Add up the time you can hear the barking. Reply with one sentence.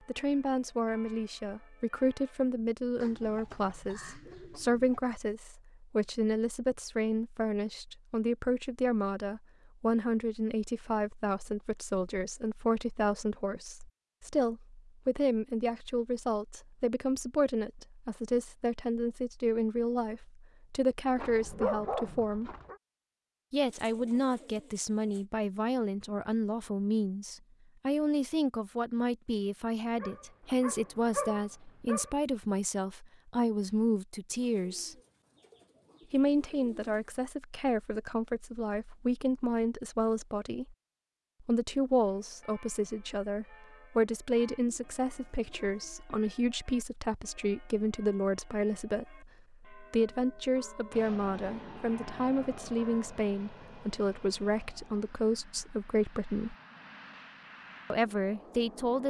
You can hear the barking for 4 seconds altogether.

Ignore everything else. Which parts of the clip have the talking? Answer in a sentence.
You can hear the talking from 0.1 to 22.6 s, from 23.5 to 35.0 s, from 36.1 to 40.8 s, from 41.4 to 56.5 s and from 57.9 to 59.0 s.